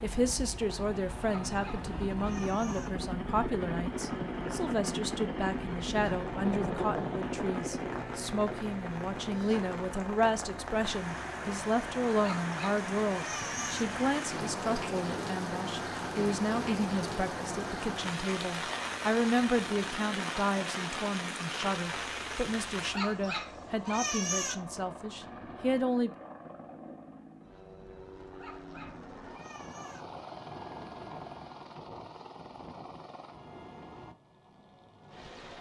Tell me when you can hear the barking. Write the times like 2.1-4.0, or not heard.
1.2-2.9, 12.2-13.8, 22.9-24.6, 28.4-30.1.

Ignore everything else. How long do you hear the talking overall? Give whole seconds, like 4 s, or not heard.
26 s.